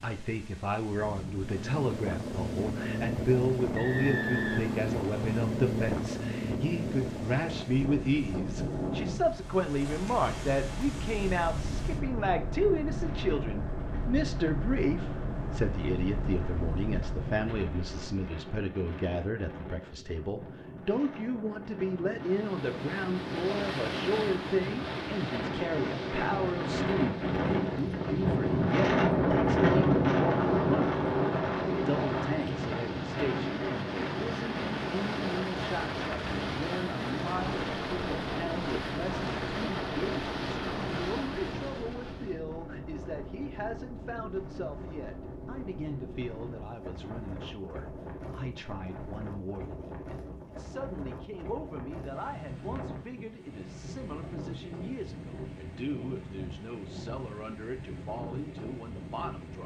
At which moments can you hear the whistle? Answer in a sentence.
You can hear the whistle from 3.8 to 5.3 s.